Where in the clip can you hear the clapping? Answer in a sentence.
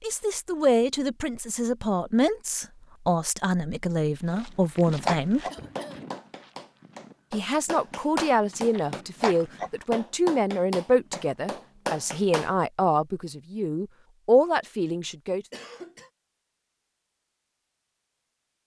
You can hear the clapping from 5.0 to 12.6 s.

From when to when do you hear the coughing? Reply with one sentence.
The coughing can be heard from 5.5 to 6.1 s and from 15.5 to 16.1 s.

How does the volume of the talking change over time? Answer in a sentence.
The loudness of the talking stays about the same.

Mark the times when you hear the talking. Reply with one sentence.
You can hear the talking from 0.0 to 5.5 s and from 7.3 to 15.4 s.